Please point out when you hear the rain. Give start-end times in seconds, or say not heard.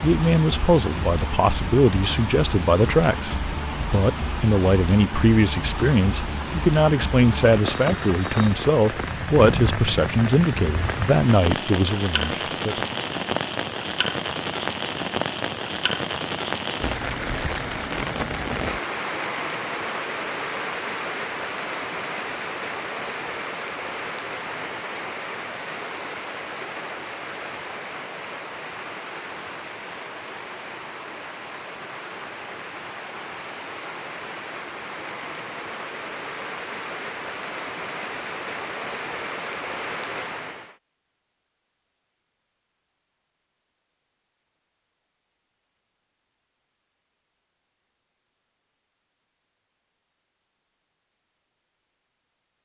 0.0-40.8.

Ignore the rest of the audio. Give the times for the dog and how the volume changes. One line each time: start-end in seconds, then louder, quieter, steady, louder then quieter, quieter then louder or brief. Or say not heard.
not heard.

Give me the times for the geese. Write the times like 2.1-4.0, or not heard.
not heard.